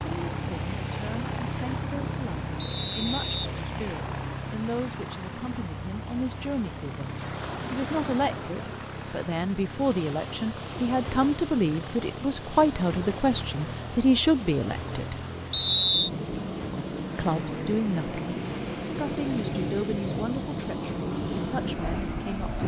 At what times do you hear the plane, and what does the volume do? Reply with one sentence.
You can hear the plane from 0.0 to 22.6 s, getting quieter then louder.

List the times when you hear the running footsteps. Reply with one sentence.
The running footsteps can't be heard in this clip.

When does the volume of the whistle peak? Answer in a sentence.
The loudest moment of the whistle is at 16 seconds.